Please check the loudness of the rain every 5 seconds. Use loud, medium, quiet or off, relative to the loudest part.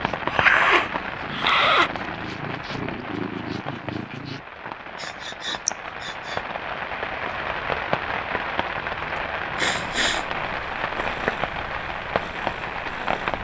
medium, loud, loud.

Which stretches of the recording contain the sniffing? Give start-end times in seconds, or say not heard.
0.2-1.9, 5.0-6.4, 9.2-10.2.